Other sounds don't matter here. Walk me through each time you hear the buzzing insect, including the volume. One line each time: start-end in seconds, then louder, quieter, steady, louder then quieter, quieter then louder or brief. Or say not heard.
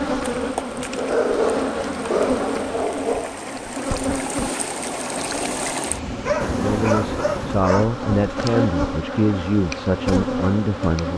0.0-11.1 quieter then louder.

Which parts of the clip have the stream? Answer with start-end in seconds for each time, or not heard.
0.1-7.7.